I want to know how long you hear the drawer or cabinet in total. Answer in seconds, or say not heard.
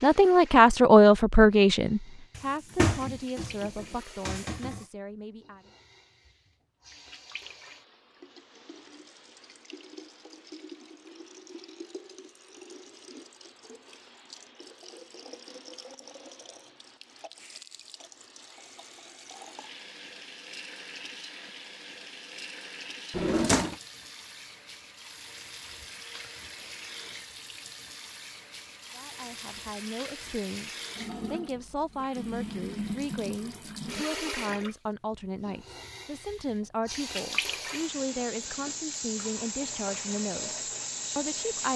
3 s.